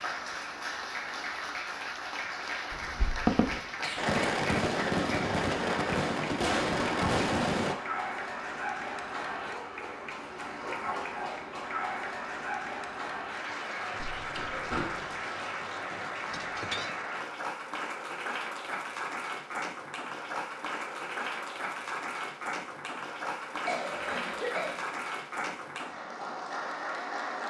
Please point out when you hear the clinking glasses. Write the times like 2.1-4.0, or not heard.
16.3-16.9.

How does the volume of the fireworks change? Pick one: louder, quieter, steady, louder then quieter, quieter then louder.
steady.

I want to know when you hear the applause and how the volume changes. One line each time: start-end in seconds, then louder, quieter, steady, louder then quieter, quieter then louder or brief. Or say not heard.
0.0-27.4 steady.